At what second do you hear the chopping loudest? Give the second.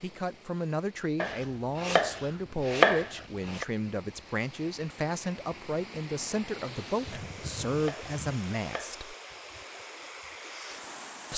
3 s.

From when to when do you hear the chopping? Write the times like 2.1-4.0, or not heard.
1.2-3.6, 7.1-8.9.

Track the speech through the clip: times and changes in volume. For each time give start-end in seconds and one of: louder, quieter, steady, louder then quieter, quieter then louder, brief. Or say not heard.
0.0-9.2 steady.